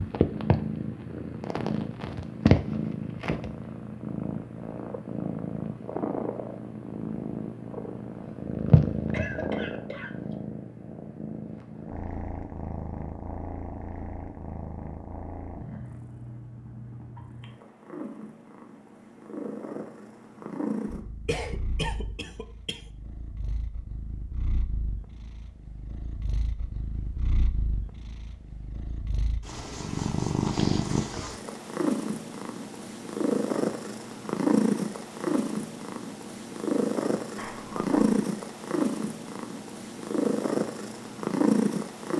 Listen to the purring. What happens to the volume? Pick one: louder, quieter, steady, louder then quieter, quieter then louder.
quieter then louder.